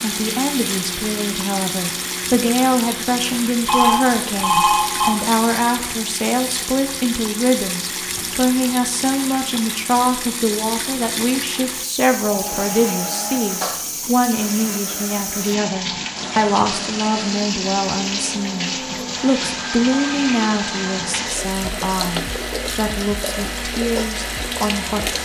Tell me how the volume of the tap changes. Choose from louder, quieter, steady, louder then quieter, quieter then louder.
steady.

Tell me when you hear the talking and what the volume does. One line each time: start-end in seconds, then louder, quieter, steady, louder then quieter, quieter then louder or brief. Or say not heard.
0.0-25.2 steady.